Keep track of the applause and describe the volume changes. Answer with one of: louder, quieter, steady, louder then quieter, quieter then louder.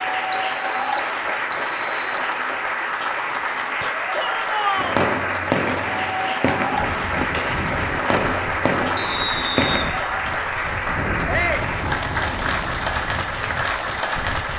steady.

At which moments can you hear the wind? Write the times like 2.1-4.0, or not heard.
6.7-14.5.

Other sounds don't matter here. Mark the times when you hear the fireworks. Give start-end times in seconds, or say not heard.
4.8-9.8.